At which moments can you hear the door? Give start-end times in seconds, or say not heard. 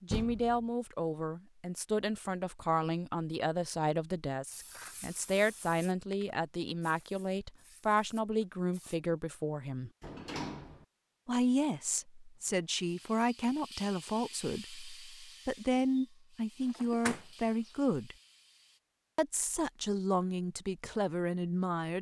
0.1-0.7, 10.0-10.8, 16.8-17.7.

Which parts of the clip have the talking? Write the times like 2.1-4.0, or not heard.
0.0-9.9, 11.2-18.1, 19.1-21.9.